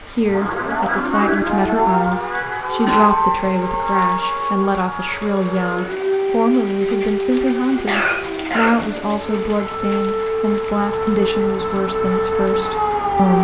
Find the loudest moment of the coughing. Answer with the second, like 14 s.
8 s.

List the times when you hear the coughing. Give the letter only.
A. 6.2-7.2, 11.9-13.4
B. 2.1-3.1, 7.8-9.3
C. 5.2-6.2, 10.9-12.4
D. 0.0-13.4
B.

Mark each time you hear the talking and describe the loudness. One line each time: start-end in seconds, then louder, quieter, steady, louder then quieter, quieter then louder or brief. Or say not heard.
0.0-13.4 steady.